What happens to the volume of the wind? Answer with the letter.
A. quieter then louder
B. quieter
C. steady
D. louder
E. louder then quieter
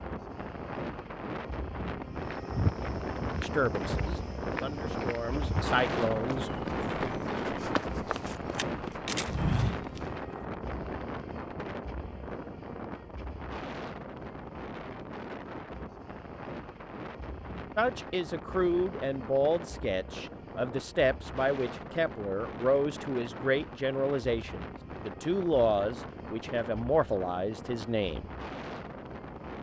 B.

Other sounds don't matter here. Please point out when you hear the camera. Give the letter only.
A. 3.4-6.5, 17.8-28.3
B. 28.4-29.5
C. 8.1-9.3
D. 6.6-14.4
C.